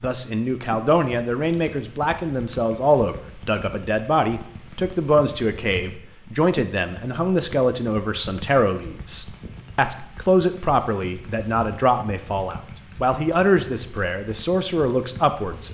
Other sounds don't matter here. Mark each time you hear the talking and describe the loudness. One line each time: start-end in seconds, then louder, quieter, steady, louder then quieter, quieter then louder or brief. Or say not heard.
0.0-15.7 steady.